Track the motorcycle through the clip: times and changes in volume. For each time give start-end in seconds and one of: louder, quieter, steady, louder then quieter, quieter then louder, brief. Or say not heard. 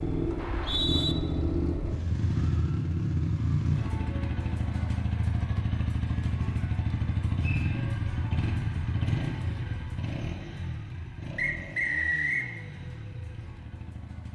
0.0-14.2 quieter.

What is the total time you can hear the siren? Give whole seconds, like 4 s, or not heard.
not heard.